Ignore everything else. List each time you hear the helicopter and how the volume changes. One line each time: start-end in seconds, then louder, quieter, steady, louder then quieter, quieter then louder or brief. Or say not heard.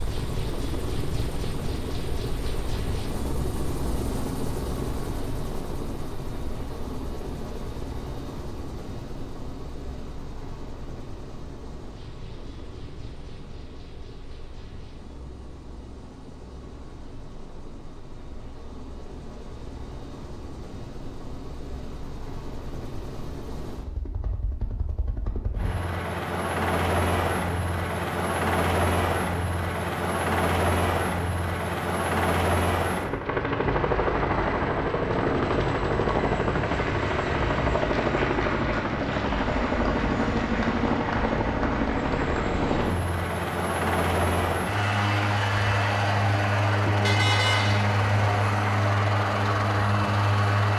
0.0-50.7 quieter then louder.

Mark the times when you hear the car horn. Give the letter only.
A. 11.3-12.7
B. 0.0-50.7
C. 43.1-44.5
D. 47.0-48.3
D.